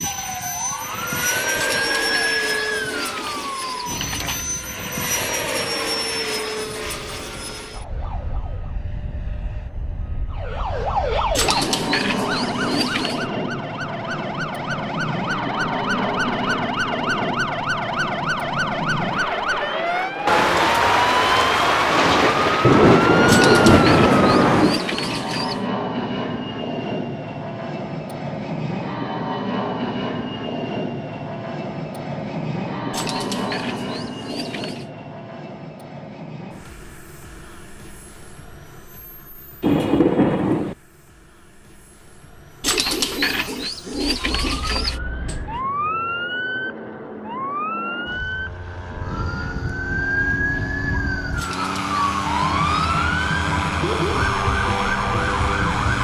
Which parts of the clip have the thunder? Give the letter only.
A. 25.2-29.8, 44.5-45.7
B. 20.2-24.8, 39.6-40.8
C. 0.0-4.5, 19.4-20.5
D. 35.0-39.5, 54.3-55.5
B.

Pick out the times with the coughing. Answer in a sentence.
The coughing can't be heard in this clip.